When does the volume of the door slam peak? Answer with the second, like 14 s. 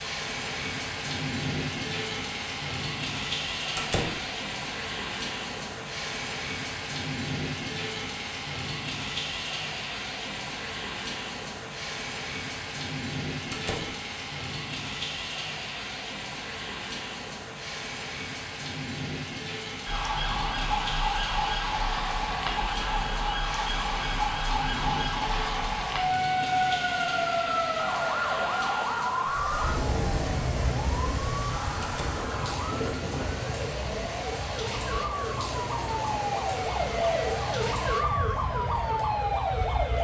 4 s.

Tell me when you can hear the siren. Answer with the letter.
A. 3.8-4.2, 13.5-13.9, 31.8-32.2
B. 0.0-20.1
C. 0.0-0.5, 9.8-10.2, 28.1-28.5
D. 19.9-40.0
D.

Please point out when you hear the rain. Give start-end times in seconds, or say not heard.
0.0-40.0.